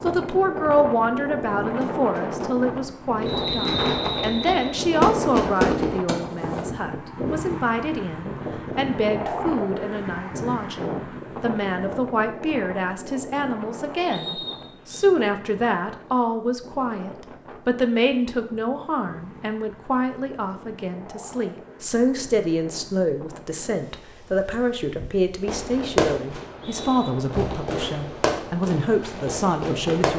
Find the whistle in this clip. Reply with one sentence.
You can hear the whistle from 3.2 to 4.8 s, from 14.1 to 15.1 s and from 26.4 to 27.1 s.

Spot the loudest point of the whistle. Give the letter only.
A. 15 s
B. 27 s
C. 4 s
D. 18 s
C.